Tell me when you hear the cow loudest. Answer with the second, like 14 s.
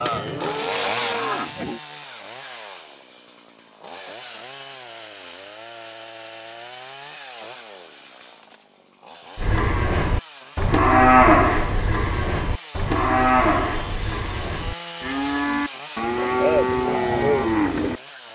11 s.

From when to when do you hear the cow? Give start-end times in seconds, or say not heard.
0.0-1.8, 9.3-18.0.